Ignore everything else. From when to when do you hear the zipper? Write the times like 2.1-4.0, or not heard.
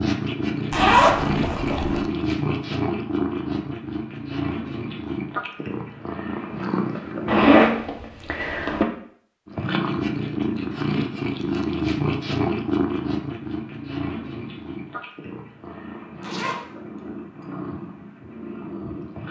0.7-2.0, 7.2-8.8, 16.2-16.6.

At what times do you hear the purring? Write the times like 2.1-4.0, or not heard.
0.0-7.5, 9.4-19.2.